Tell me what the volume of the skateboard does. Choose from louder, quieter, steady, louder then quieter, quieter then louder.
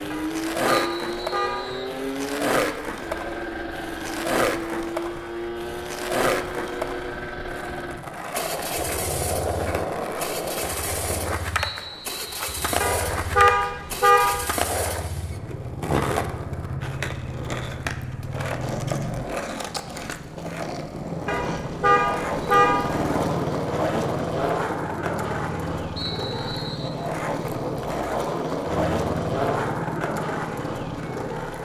steady.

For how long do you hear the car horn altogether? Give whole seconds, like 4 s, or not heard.
5 s.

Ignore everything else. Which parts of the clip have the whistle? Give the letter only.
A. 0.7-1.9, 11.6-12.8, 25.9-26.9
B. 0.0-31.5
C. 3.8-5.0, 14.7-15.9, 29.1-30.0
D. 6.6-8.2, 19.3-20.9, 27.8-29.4
A.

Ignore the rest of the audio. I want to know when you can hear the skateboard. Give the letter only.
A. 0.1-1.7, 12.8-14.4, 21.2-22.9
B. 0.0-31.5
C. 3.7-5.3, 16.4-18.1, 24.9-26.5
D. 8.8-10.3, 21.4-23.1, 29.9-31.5
B.